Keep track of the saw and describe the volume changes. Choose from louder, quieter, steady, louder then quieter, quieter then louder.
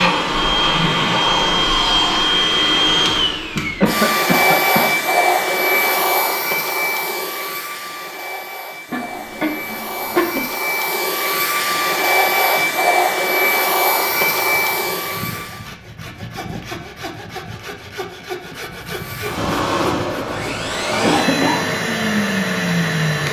louder.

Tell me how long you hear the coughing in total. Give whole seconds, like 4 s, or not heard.
3 s.